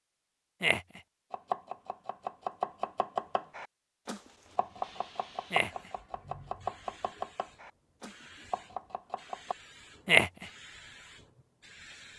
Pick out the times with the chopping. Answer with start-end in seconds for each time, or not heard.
1.3-9.6.